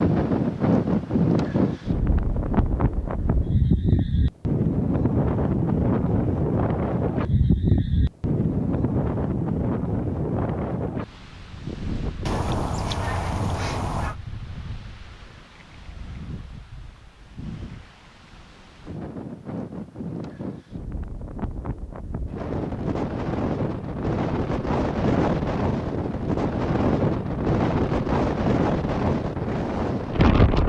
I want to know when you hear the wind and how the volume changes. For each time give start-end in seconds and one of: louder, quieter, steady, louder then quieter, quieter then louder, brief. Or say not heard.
0.0-30.6 quieter then louder.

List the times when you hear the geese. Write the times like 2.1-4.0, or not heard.
12.2-14.2.